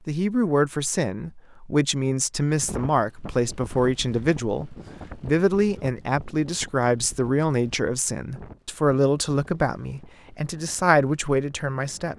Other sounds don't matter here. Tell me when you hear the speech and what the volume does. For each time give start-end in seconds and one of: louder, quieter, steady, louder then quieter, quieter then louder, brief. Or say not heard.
0.1-12.1 steady.